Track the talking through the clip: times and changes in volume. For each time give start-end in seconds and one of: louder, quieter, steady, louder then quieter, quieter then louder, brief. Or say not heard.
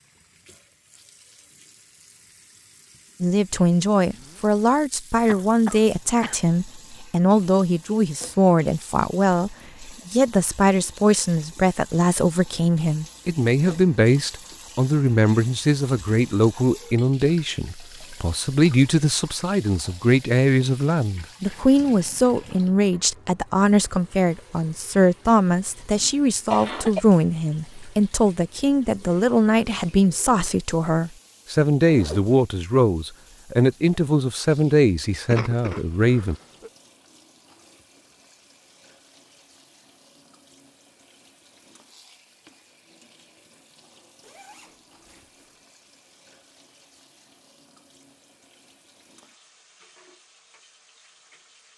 3.2-36.4 steady.